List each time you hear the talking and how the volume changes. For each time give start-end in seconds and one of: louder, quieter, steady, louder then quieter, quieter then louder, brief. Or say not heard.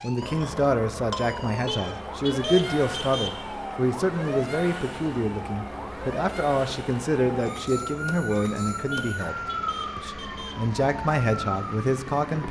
0.0-9.3 steady
9.9-12.4 brief.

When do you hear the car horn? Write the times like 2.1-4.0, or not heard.
1.6-3.4, 8.9-10.7.